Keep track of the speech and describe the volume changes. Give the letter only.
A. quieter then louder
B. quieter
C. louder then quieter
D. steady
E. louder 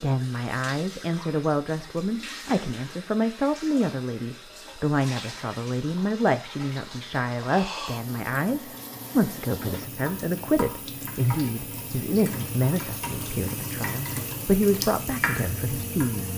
D.